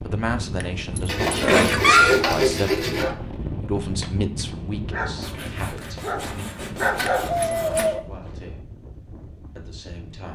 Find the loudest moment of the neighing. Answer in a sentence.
The loudest moment of the neighing is at 2 seconds.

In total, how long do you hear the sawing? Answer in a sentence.
The sawing can be heard for 5 seconds in total.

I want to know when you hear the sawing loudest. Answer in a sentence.
The volume of the sawing peaks at 2 seconds.